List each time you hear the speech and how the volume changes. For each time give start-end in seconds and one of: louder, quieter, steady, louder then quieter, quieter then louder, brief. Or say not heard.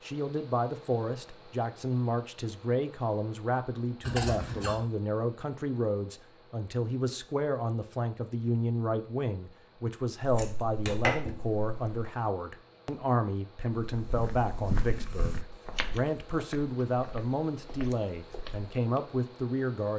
0.0-19.9 steady.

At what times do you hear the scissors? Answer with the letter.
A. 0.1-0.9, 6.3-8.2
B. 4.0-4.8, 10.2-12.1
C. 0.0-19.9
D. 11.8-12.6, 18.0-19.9
B.